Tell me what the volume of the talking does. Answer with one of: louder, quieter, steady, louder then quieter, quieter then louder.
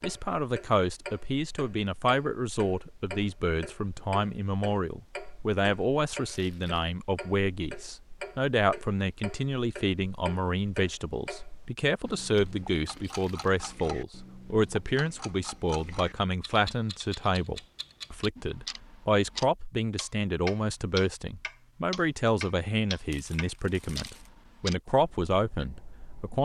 steady.